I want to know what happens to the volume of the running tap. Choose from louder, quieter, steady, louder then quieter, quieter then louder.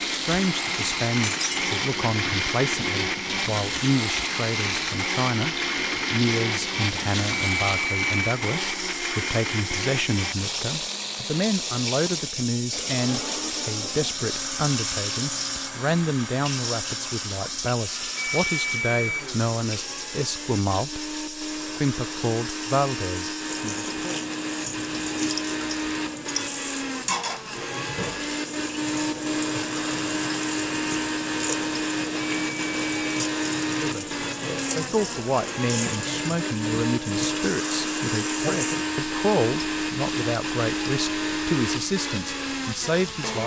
steady.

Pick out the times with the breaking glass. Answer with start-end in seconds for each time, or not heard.
1.2-1.6.